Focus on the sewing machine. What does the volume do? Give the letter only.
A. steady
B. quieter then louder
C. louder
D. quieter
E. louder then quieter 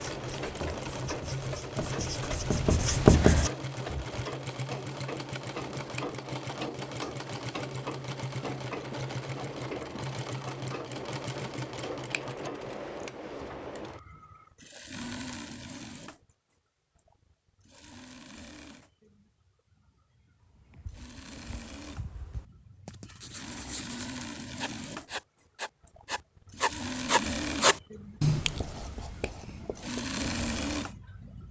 B.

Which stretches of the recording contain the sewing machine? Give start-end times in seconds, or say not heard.
0.0-31.4.